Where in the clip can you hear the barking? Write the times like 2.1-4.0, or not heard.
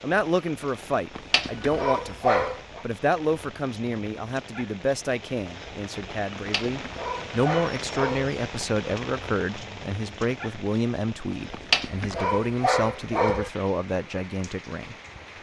1.1-2.9, 6.3-8.3, 11.5-13.5.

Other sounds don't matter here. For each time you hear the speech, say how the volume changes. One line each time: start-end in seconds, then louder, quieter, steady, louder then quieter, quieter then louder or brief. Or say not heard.
0.0-14.9 steady.